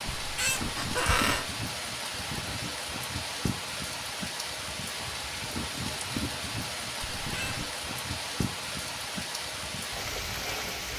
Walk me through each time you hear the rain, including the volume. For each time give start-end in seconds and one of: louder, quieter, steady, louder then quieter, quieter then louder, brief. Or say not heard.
0.0-10.9 steady.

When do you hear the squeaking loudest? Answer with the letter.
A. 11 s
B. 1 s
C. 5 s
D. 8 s
B.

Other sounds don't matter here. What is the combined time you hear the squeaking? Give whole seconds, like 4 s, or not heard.
2 s.